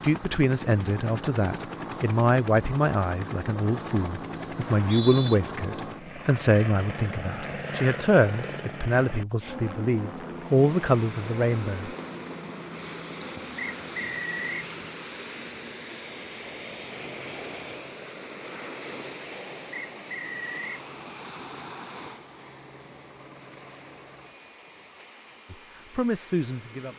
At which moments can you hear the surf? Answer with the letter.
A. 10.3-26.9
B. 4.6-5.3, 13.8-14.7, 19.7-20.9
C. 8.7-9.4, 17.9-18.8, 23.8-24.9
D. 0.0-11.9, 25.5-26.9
A.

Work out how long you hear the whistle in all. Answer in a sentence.
The whistle can be heard for 3 seconds in total.